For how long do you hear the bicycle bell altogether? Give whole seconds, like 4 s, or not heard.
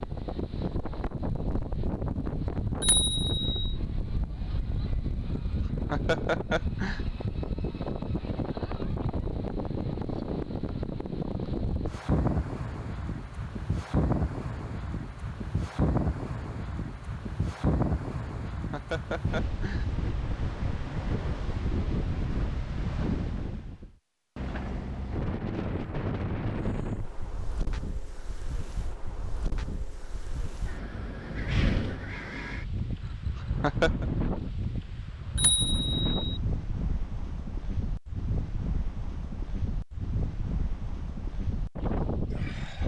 2 s.